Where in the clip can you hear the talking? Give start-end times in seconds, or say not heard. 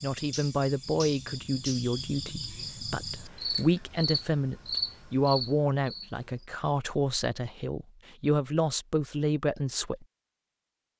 0.0-10.1.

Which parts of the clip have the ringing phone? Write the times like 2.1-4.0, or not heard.
not heard.